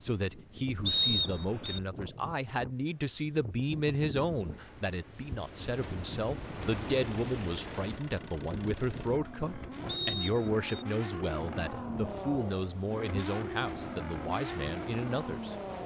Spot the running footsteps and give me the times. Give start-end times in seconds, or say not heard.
not heard.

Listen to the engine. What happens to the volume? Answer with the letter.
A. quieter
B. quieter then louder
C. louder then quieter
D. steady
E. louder
E.